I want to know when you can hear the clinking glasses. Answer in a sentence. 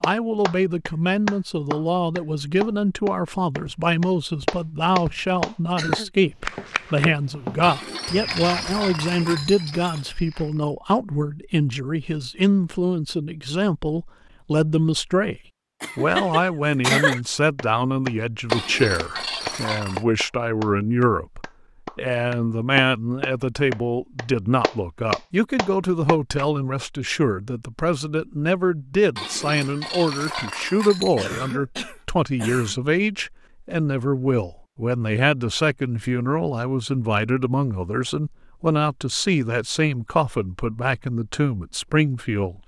The clinking glasses can be heard from 7.6 to 10.1 s, from 18.4 to 20.1 s and from 29.1 to 31.2 s.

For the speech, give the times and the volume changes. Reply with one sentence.
You can hear the speech from 0.0 to 42.6 s, at a steady volume.